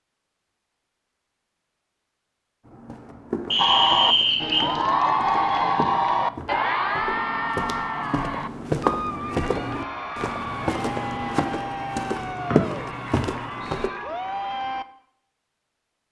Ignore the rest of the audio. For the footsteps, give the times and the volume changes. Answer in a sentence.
You can hear the footsteps from 2.6 to 13.9 s, getting louder.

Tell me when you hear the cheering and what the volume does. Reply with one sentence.
You can hear the cheering from 3.5 to 14.8 s, getting quieter.